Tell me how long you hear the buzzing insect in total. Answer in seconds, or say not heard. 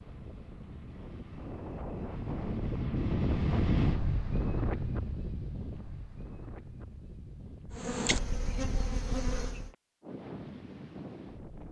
2 s.